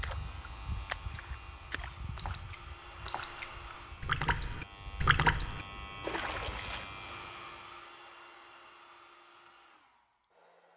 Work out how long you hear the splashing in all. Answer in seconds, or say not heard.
7 s.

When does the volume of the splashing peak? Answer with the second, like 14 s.
5 s.